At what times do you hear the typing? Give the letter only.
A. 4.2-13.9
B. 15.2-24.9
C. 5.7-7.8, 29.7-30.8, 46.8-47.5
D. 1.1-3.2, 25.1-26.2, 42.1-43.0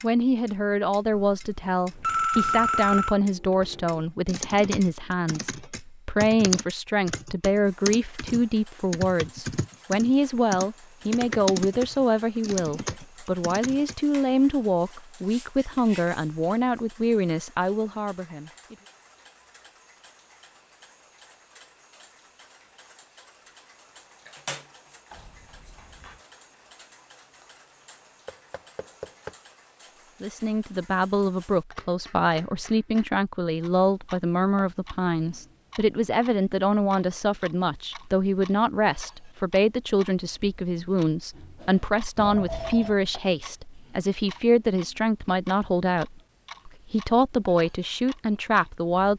A.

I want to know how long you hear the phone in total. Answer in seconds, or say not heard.
4 s.